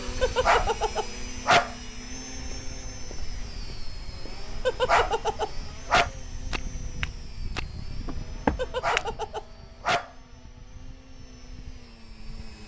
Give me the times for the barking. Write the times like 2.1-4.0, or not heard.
0.2-1.8, 4.7-6.1, 8.6-10.1.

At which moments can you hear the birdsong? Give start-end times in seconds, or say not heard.
not heard.